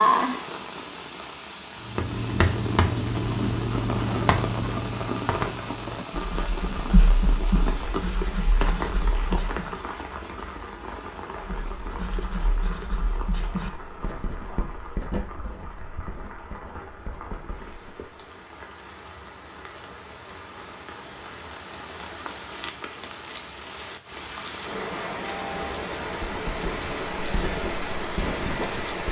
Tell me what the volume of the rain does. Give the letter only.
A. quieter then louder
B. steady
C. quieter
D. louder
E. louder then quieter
A.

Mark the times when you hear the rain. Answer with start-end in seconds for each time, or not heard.
0.0-29.0.